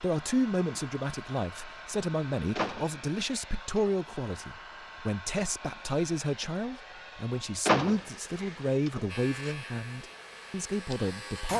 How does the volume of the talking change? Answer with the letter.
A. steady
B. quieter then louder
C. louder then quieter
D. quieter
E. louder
A.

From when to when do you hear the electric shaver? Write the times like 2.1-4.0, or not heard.
9.1-11.5.